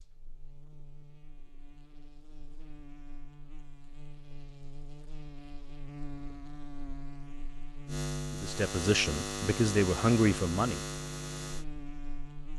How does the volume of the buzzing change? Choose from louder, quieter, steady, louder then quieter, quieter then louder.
louder.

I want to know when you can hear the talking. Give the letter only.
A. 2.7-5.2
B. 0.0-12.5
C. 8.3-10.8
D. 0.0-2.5
C.